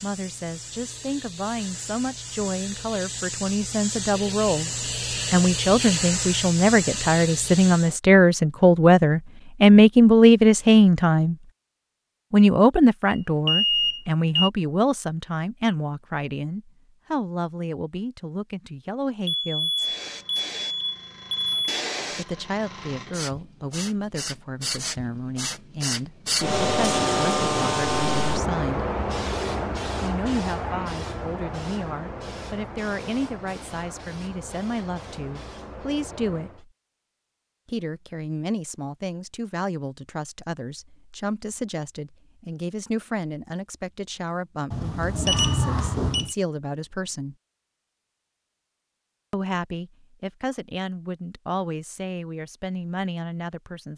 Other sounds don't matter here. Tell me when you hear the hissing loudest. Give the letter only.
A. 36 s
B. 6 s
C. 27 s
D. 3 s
C.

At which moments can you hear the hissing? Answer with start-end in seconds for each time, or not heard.
0.0-8.0, 19.8-36.6.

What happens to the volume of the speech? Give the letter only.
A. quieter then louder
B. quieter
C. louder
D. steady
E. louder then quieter
B.